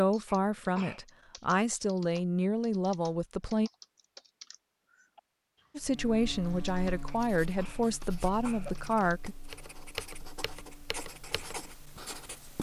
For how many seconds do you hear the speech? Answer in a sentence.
You can hear the speech for 7 seconds altogether.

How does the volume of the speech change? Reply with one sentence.
The volume of the speech stays about the same.